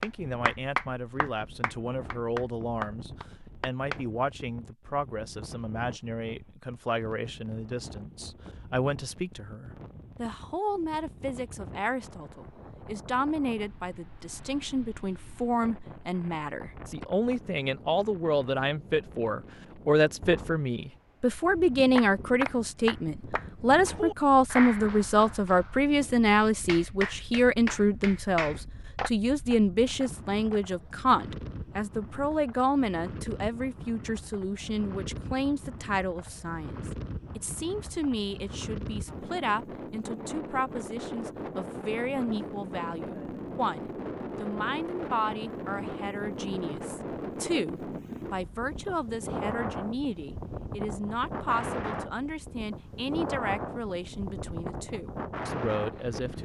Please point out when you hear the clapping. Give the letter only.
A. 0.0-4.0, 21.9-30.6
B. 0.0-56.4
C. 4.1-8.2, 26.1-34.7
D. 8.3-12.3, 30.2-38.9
A.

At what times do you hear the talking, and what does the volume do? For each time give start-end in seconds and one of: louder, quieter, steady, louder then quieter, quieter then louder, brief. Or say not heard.
0.0-56.4 louder then quieter.